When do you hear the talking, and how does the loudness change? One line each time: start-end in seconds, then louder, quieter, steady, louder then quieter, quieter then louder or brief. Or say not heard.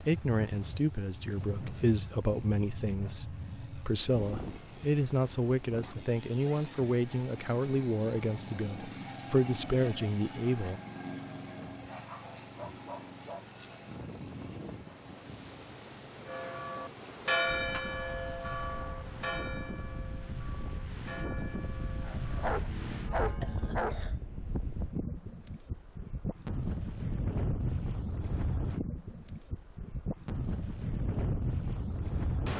0.0-10.8 steady.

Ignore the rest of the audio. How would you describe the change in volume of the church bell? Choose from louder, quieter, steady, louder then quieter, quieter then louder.
quieter.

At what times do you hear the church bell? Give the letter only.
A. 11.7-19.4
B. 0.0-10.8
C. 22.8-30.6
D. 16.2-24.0
D.